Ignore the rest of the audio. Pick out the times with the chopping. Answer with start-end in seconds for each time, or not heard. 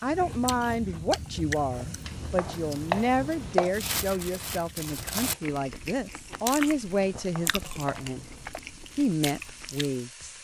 2.0-3.8, 7.2-8.6.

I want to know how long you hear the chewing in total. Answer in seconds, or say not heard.
10 s.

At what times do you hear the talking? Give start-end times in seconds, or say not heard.
0.0-8.2, 8.9-10.3.